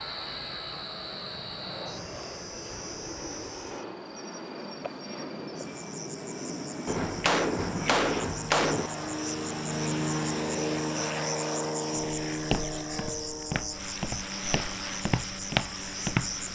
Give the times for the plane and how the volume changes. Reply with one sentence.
The plane can be heard from 0.0 to 16.5 s, getting louder then quieter.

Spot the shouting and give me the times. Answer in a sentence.
The shouting can't be heard in this clip.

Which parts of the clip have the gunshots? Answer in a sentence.
You can hear the gunshots from 6.8 to 8.9 s.